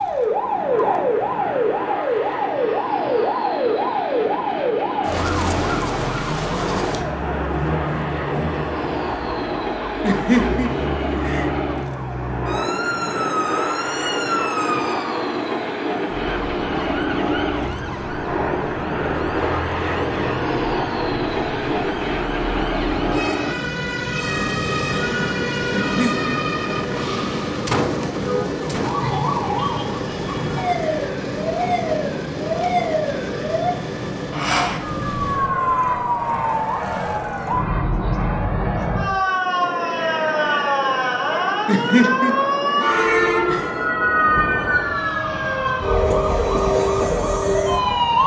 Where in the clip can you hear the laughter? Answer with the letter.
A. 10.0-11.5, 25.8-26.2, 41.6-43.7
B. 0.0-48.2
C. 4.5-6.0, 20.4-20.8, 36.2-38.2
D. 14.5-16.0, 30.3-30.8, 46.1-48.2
A.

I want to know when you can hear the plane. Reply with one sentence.
The plane can be heard from 0.0 to 48.2 s.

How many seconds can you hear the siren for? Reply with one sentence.
The siren can be heard for 48 seconds in total.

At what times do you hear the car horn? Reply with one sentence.
You can't hear the car horn here.